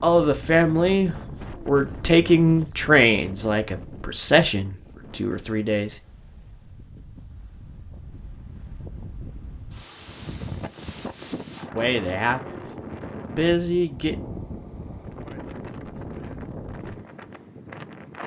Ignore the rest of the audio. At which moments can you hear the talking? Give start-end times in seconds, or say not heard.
0.0-6.0, 11.8-12.6, 13.2-14.2.